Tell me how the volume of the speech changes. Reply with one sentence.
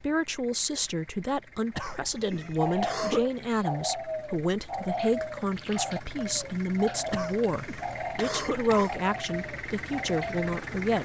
The loudness of the speech stays about the same.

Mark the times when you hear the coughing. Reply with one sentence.
You can hear the coughing from 1.8 to 3.2 s and from 7.1 to 9.0 s.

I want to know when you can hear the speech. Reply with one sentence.
You can hear the speech from 0.0 to 10.9 s.